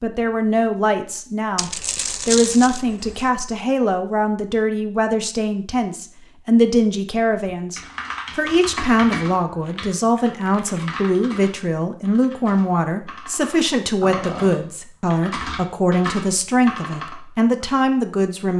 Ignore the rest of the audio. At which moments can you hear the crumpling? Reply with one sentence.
You can hear the crumpling from 1.6 to 3.3 s and from 9.6 to 10.8 s.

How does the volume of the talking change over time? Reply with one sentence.
The loudness of the talking stays about the same.